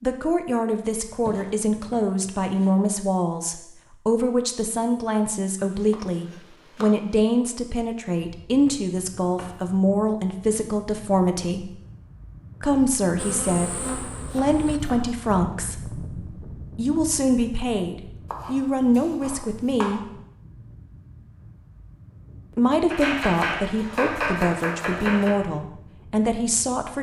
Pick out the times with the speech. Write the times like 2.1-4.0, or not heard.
0.0-11.7, 12.6-20.1, 22.6-26.9.